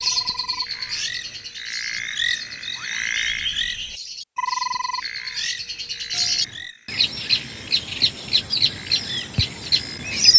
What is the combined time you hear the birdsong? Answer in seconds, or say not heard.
10 s.